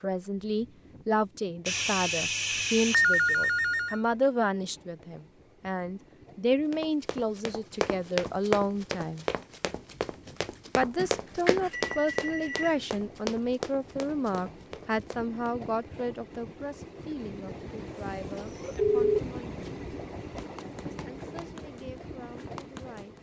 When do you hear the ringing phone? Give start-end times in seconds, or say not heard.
1.6-4.0, 10.9-12.8, 18.8-19.2.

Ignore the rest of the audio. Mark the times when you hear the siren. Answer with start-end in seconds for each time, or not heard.
not heard.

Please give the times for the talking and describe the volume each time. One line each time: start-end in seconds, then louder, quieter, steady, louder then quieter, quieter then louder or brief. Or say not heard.
0.0-9.2 steady
10.8-19.6 quieter
20.9-23.1 brief.